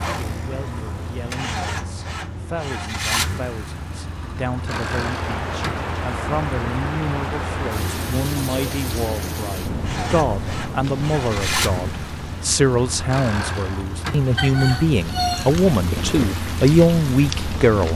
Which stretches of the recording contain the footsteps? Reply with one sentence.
You can't hear the footsteps here.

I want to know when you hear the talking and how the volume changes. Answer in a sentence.
You can hear the talking from 0.0 to 17.9 s, getting louder.